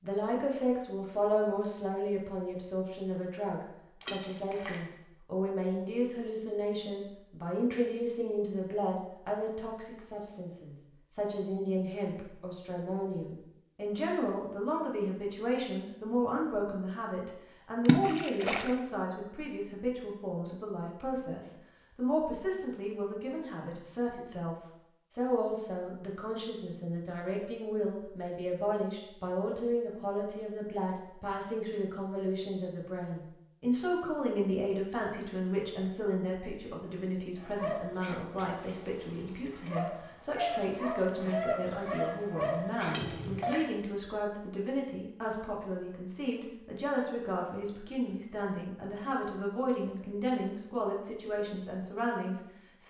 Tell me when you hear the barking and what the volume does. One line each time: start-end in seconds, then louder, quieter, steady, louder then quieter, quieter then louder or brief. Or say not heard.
37.4-43.6 louder.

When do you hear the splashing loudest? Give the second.
18 s.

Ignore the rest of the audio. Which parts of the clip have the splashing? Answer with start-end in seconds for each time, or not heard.
4.0-4.8, 17.9-18.7, 42.9-43.6.